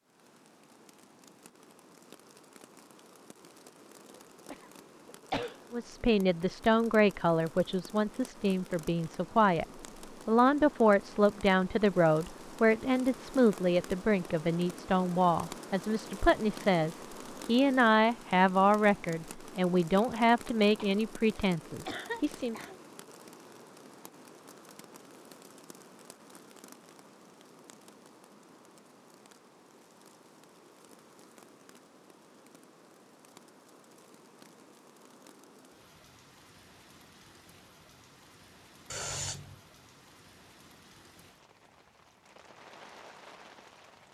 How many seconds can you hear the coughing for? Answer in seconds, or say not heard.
4 s.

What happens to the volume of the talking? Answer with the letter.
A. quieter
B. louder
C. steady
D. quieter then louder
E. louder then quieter
C.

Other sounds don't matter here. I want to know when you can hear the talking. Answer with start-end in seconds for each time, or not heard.
5.7-9.7, 10.2-22.6.